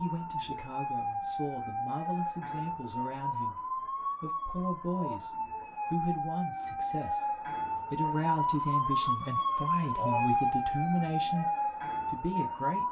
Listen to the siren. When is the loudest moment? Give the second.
10 s.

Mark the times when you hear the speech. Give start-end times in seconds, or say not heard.
0.0-11.4, 12.1-12.8.